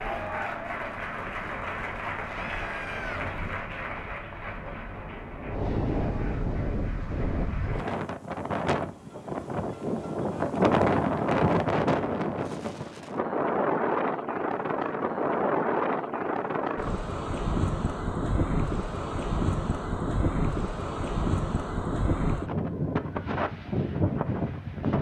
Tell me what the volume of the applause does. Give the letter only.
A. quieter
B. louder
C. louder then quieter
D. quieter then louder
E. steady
A.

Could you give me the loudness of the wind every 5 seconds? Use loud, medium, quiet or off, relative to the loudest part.
quiet, medium, loud, loud, loud.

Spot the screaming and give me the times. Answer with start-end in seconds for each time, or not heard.
2.2-3.2.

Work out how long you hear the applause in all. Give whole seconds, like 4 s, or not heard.
8 s.